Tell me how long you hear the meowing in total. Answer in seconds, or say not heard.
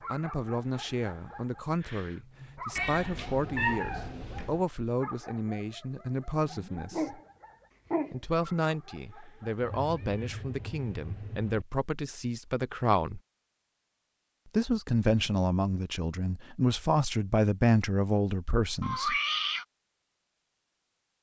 5 s.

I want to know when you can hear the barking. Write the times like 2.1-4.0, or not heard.
0.0-10.4.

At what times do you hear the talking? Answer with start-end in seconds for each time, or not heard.
0.1-7.2, 8.1-13.2, 14.5-19.1.